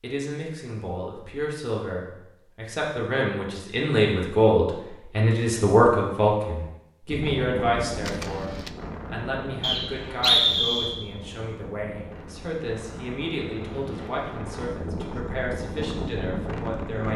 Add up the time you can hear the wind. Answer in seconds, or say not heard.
10 s.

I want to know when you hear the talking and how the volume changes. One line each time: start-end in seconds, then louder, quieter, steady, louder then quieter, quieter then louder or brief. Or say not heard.
0.0-17.1 louder then quieter.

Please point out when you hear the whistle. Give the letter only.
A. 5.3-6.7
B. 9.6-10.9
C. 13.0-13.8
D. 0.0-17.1
B.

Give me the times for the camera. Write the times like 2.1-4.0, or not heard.
8.0-8.8.